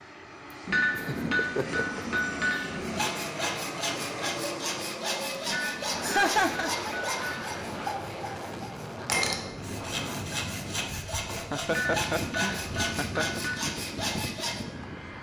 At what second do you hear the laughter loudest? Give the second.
6 s.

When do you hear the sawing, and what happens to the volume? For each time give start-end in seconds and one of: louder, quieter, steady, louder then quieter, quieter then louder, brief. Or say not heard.
2.8-14.7 steady.